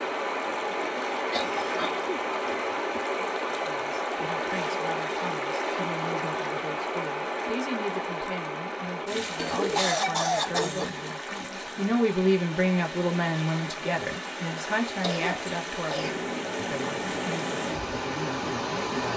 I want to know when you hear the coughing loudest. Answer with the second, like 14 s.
10 s.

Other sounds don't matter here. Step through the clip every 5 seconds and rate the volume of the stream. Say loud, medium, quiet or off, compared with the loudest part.
loud, loud, medium, loud.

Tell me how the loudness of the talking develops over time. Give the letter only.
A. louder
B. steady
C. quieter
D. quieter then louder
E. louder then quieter
E.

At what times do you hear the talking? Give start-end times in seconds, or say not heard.
3.5-19.1.